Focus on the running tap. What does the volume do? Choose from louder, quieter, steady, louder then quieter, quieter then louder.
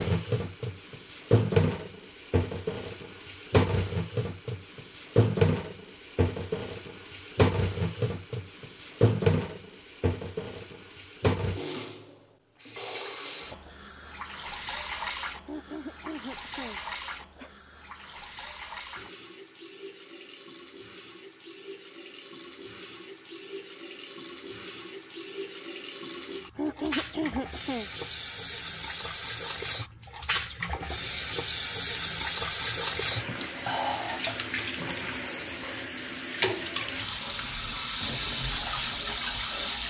quieter then louder.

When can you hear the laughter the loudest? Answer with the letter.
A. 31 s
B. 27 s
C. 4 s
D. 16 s
B.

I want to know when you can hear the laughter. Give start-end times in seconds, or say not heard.
15.4-17.6, 26.6-27.9.